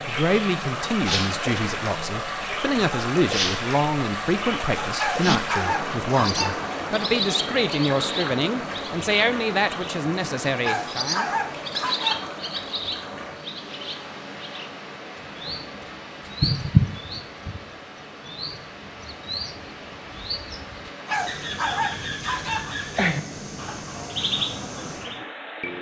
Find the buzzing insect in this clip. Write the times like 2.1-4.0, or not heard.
not heard.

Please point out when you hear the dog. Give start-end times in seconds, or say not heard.
5.0-6.7, 10.6-12.3, 20.9-22.8.